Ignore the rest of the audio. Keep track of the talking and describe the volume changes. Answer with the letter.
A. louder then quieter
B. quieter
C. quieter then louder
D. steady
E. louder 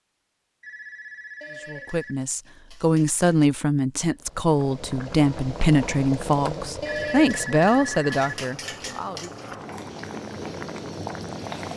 D.